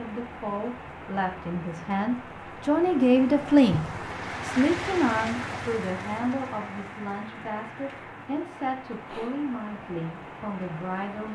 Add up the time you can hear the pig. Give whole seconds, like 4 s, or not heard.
not heard.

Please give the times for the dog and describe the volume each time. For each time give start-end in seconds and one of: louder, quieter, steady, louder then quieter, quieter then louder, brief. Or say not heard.
not heard.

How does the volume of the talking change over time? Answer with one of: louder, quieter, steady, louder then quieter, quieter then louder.
louder then quieter.